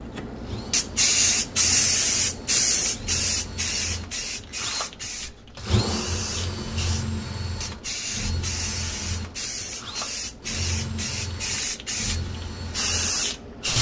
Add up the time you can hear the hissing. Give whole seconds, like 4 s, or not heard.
14 s.